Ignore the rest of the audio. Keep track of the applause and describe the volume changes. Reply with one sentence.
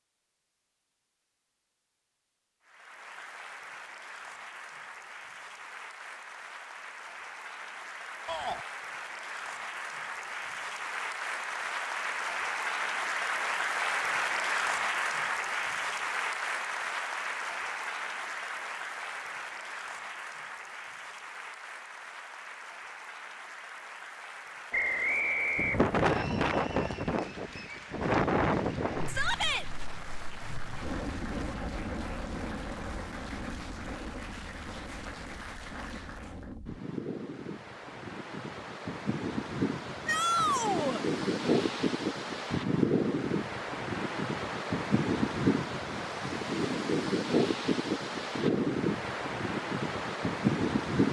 The loudness of the applause goes up, then down.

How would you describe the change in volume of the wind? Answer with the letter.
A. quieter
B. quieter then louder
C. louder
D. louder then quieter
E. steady
B.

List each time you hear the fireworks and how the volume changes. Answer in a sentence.
You can't hear the fireworks here.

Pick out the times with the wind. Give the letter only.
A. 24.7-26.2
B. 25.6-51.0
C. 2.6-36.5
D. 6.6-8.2
B.